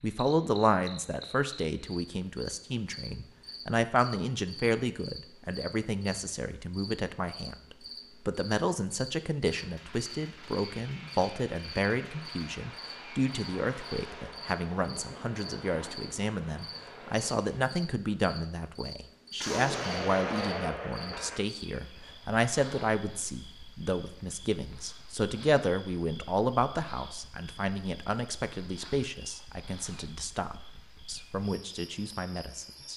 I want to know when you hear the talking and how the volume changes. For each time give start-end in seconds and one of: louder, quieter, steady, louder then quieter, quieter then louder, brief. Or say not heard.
0.0-32.9 steady.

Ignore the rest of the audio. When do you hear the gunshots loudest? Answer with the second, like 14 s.
20 s.